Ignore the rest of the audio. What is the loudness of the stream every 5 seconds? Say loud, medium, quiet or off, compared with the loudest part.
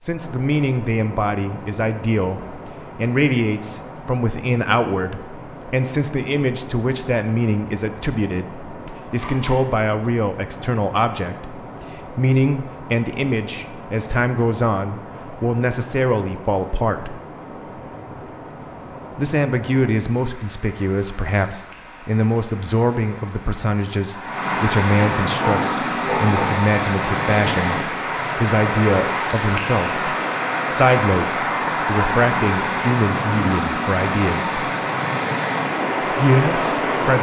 quiet, quiet, quiet, quiet, medium, loud, loud, loud.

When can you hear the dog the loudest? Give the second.
26 s.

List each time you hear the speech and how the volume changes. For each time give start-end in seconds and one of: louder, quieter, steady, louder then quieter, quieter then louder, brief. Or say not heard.
0.0-17.2 steady
19.1-34.7 steady
36.1-37.1 brief.